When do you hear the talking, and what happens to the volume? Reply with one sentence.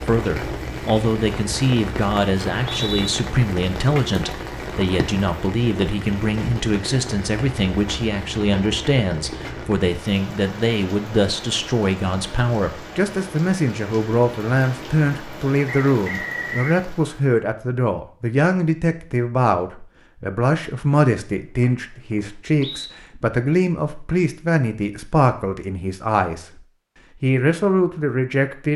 The talking can be heard from 0.1 to 26.4 s, at a steady volume; and briefly from 27.2 to 28.7 s.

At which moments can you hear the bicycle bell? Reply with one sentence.
The bicycle bell can't be heard in this clip.